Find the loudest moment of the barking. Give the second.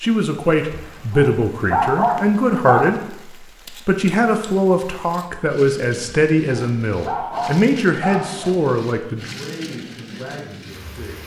2 s.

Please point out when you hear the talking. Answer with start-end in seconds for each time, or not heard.
0.0-3.1, 3.9-11.2.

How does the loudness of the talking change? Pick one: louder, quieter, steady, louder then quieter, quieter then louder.
quieter.